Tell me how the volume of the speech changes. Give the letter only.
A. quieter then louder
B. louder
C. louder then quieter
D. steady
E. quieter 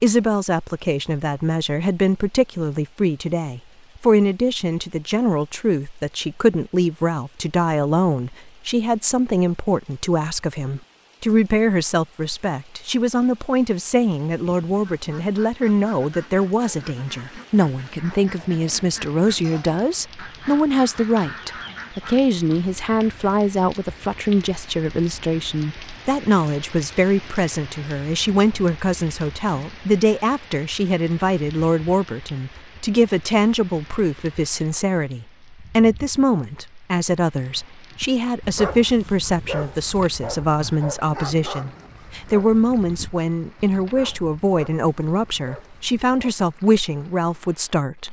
D.